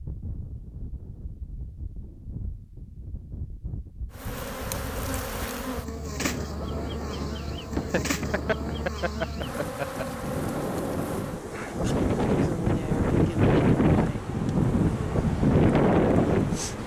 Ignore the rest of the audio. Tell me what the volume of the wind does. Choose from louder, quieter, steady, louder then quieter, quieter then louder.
louder.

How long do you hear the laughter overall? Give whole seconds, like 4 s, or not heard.
2 s.